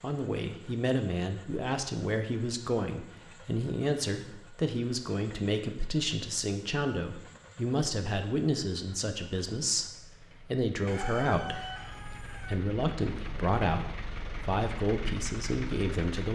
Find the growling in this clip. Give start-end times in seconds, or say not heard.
not heard.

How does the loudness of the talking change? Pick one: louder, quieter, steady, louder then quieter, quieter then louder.
steady.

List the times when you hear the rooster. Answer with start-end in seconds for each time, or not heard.
10.8-12.7.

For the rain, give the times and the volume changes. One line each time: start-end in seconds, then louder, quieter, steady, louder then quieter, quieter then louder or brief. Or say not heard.
not heard.